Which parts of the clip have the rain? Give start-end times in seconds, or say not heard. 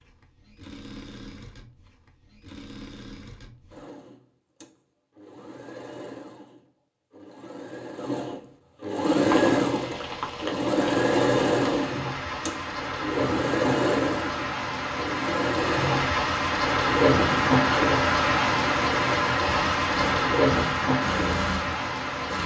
9.1-22.4.